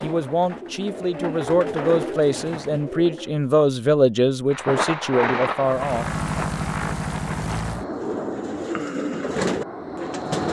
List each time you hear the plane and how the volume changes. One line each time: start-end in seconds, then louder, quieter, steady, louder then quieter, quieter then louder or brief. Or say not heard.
5.6-10.4 quieter.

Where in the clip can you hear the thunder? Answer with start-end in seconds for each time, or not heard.
4.5-7.7.